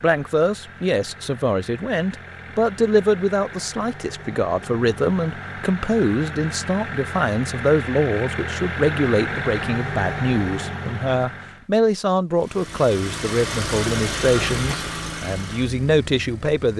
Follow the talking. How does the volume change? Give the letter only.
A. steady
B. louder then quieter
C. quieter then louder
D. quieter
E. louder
A.